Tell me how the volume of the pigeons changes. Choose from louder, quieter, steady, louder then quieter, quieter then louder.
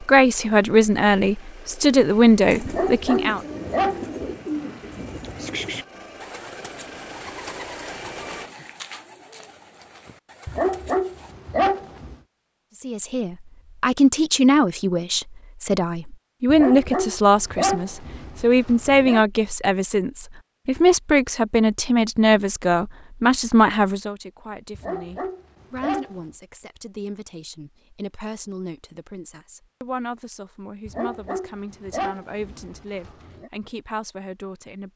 quieter.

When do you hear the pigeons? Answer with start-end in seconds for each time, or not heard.
2.5-11.3.